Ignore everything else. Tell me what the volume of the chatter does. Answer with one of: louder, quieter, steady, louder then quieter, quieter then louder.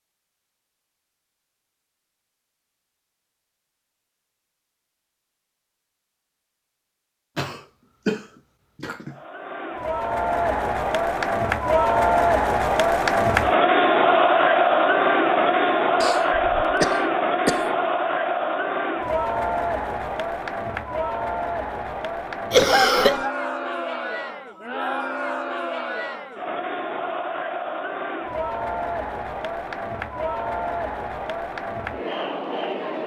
quieter.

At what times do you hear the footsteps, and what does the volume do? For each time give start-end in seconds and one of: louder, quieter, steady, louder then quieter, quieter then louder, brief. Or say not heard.
not heard.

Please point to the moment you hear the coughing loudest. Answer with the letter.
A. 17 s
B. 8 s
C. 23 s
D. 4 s
C.